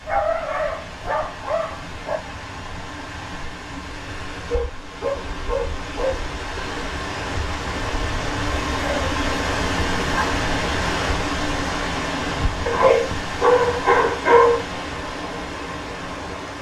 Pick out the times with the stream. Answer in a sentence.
You can hear the stream from 0.0 to 16.5 s.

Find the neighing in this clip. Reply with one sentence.
The neighing can't be heard in this clip.